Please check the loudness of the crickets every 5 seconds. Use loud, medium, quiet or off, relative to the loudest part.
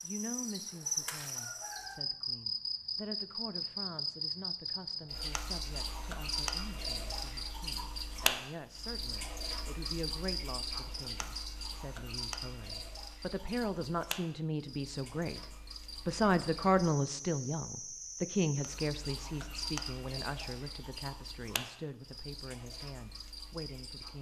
loud, loud, medium, medium, medium.